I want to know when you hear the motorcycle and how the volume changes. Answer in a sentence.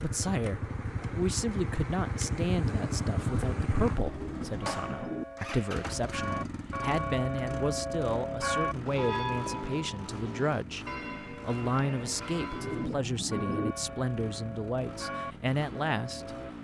You can hear the motorcycle from 0.0 to 16.5 s, getting quieter.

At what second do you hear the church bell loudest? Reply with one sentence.
The loudest moment of the church bell is at 9 seconds.